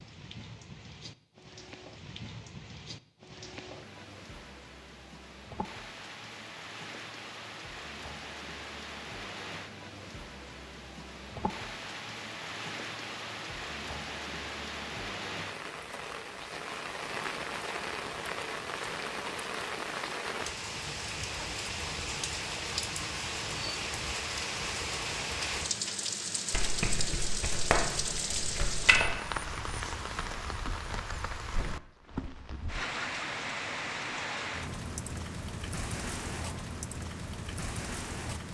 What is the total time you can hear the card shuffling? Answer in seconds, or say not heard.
3 s.